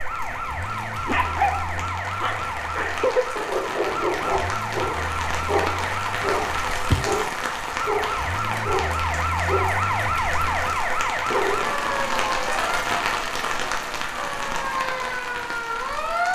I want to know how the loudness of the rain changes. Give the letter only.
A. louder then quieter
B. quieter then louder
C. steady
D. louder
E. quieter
D.